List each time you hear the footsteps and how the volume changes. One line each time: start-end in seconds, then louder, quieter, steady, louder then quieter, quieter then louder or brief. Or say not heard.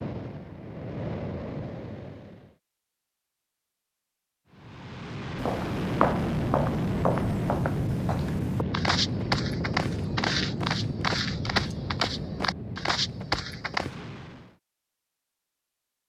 5.3-13.9 quieter then louder.